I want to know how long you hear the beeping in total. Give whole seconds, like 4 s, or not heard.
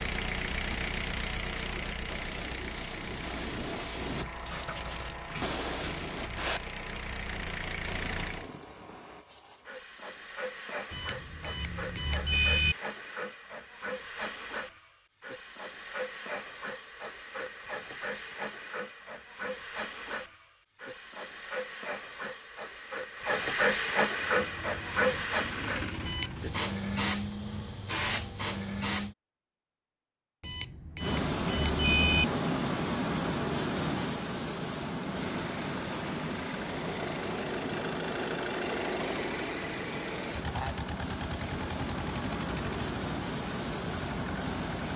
4 s.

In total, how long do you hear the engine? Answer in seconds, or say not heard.
21 s.